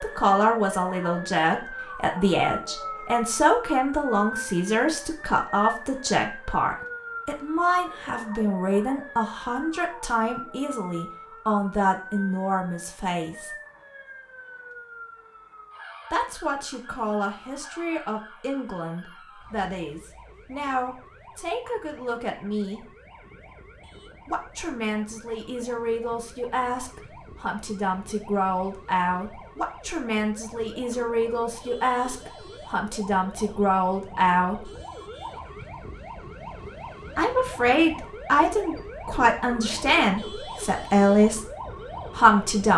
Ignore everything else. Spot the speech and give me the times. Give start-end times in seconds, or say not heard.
0.0-13.5, 16.1-22.9, 24.2-34.7, 37.1-41.5, 42.1-42.7.